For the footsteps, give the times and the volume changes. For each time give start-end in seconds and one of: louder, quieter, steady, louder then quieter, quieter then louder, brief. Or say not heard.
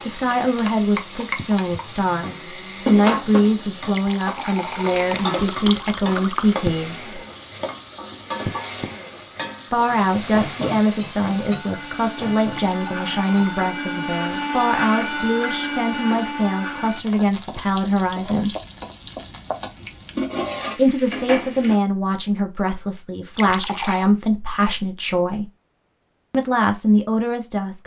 not heard.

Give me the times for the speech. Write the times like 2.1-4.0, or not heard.
0.1-7.2, 9.7-18.6, 20.8-25.5, 26.3-27.8.